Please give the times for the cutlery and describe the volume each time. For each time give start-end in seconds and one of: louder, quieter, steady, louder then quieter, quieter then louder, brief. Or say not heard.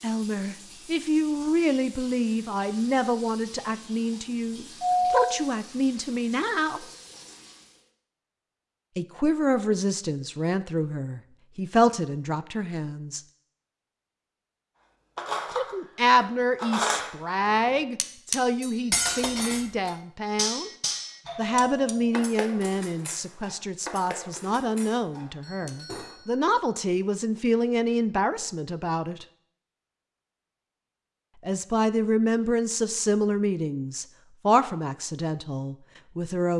15.2-26.1 quieter.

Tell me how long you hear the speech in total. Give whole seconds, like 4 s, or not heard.
29 s.